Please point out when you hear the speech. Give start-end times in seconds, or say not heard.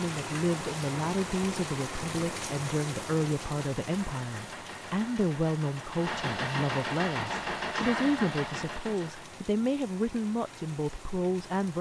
0.0-11.7.